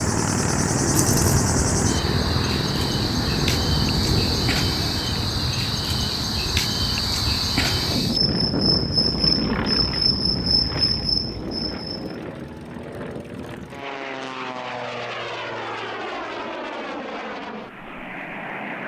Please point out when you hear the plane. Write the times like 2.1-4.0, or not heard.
0.0-18.8.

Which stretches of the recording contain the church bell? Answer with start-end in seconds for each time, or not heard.
not heard.